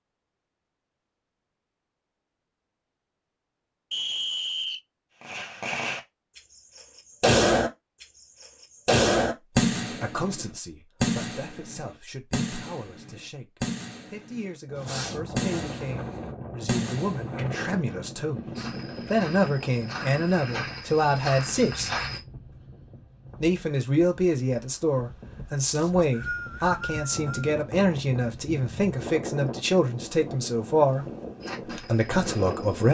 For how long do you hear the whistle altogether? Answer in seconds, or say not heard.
3 s.